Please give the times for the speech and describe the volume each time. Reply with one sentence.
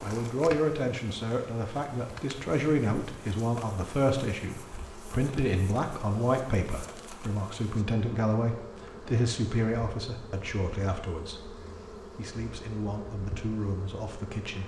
The speech can be heard from 0.0 to 14.6 s, getting quieter.